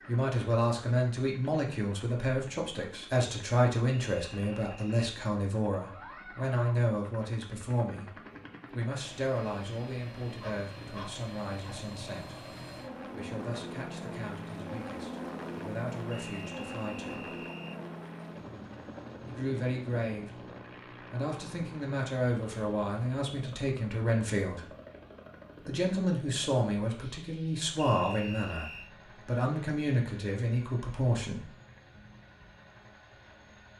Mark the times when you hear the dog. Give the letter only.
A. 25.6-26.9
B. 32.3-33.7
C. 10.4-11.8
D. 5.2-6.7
C.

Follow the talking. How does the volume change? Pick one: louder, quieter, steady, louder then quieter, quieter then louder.
quieter then louder.